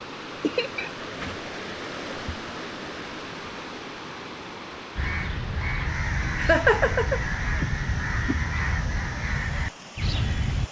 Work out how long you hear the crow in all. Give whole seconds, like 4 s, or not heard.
6 s.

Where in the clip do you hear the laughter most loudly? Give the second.
7 s.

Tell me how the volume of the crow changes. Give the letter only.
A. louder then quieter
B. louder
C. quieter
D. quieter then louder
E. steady
E.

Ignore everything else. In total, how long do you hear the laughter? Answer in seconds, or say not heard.
2 s.